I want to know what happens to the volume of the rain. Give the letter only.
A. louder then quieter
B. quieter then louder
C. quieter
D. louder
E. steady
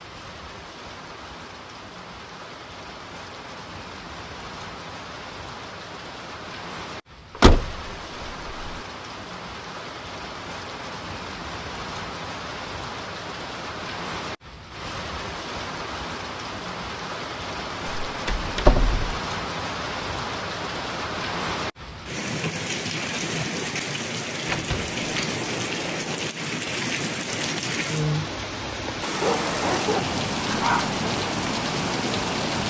D.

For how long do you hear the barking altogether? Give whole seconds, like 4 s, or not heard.
2 s.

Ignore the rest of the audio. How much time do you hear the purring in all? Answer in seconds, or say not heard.
not heard.